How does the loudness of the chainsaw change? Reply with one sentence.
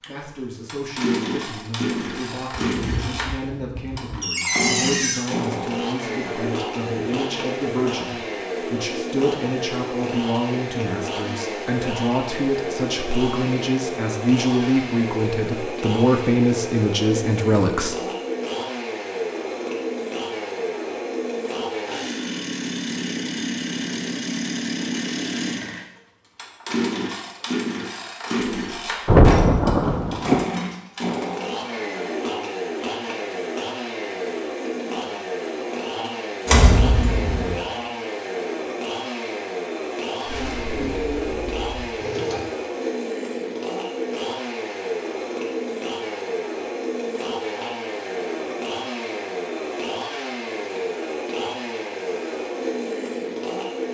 The volume of the chainsaw stays about the same.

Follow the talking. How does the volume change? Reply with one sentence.
The loudness of the talking goes up.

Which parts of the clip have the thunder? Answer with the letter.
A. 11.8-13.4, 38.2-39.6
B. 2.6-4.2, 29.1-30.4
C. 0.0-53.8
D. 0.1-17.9
B.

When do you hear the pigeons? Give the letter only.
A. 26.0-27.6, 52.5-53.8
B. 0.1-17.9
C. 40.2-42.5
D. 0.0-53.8
C.